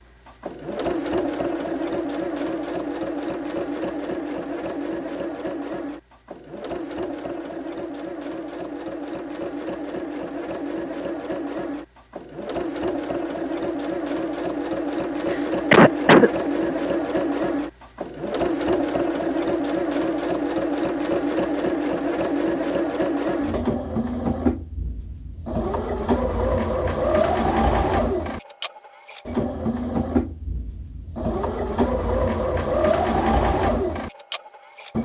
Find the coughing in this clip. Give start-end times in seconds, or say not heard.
15.3-16.8.